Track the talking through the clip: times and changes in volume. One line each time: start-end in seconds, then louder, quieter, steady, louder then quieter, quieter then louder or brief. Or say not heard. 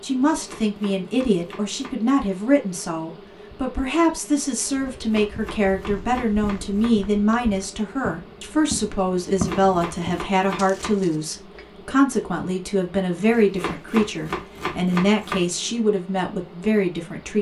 0.0-17.3 steady.